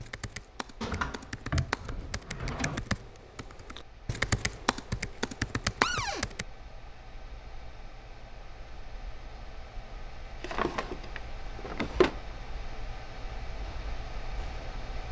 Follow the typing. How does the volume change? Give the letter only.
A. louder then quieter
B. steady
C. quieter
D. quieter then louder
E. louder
E.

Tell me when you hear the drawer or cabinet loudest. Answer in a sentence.
The loudest moment of the drawer or cabinet is at 12 seconds.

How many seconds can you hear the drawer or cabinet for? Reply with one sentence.
You can hear the drawer or cabinet for 4 seconds altogether.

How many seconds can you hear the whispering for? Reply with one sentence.
You can't hear the whispering here.